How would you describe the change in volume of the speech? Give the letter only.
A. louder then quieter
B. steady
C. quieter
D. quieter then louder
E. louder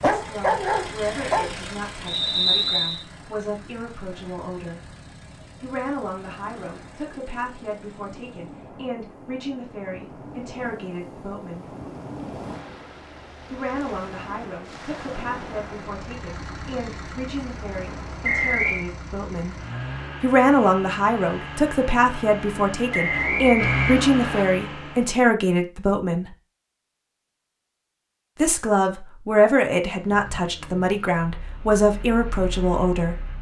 E.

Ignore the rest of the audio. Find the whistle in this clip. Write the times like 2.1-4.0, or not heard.
2.0-3.0, 18.2-18.9, 22.9-24.4.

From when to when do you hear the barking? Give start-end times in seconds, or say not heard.
0.0-1.5.